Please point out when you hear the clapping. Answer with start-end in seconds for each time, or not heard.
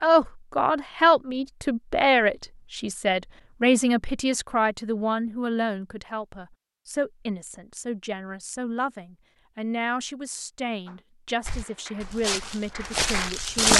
10.8-13.7.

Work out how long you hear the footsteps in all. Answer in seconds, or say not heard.
2 s.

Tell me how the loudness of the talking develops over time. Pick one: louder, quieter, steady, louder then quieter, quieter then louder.
quieter.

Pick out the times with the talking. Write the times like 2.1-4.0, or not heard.
0.0-13.7.